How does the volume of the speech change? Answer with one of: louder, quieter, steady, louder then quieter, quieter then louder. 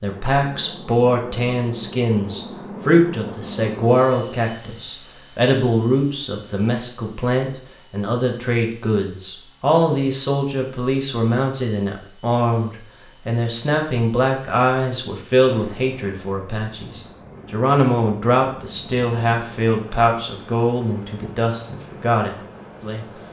steady.